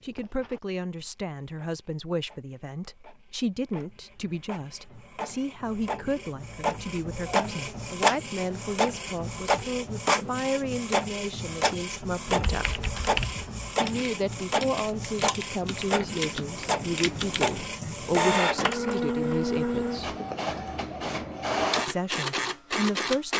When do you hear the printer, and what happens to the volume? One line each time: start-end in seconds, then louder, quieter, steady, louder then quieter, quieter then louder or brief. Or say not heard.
0.0-23.3 louder.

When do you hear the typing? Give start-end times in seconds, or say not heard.
12.2-17.6.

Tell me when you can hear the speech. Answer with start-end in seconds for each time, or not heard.
0.0-12.8, 13.8-20.1, 21.9-23.3.